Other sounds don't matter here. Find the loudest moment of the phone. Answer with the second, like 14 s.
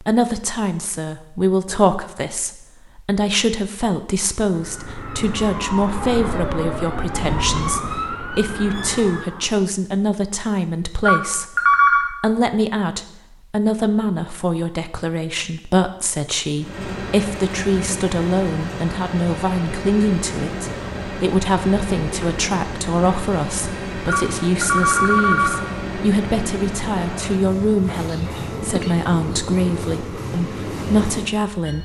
12 s.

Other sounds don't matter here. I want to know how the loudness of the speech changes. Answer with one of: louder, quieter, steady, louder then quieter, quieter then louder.
steady.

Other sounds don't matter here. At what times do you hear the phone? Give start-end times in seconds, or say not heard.
11.1-12.1, 24.1-25.6.